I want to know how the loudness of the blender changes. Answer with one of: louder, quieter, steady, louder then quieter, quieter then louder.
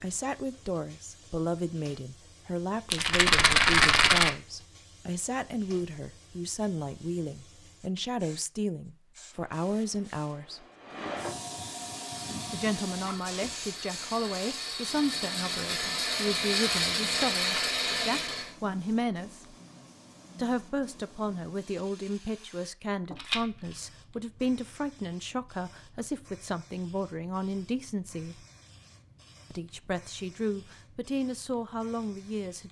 louder.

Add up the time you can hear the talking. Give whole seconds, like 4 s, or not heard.
29 s.